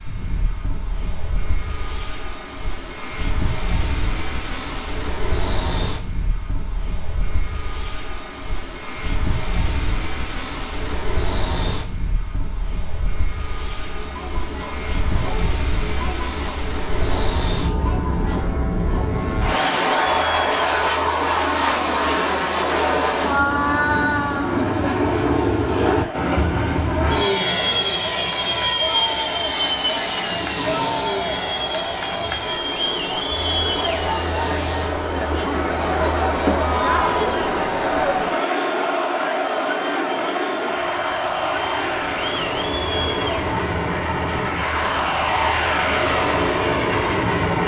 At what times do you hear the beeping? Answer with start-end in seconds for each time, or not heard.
39.4-41.9.